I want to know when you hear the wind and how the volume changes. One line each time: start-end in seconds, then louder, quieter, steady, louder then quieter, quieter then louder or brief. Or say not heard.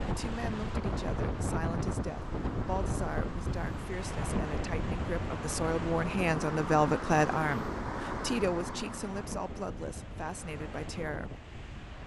0.0-12.0 quieter.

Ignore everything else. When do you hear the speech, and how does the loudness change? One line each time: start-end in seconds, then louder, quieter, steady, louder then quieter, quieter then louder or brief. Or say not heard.
0.1-11.3 louder then quieter.